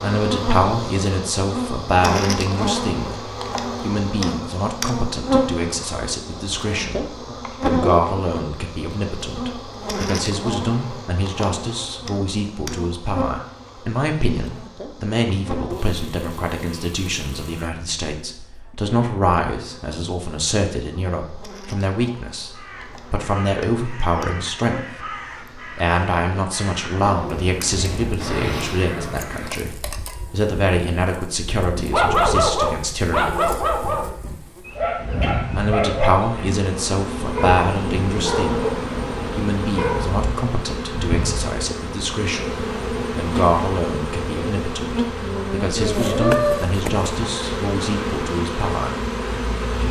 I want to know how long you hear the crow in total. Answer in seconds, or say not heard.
7 s.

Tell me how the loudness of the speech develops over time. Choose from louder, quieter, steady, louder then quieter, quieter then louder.
steady.